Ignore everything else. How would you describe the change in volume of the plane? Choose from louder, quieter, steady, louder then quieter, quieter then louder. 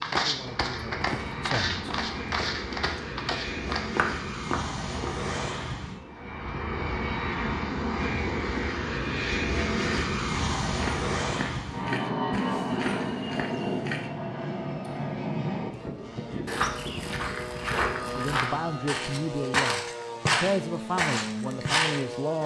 louder then quieter.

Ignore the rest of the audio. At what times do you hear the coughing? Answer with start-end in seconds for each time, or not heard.
not heard.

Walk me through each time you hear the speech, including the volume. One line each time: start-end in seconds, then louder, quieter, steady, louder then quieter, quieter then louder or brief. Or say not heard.
0.0-1.8 brief
18.1-22.4 louder then quieter.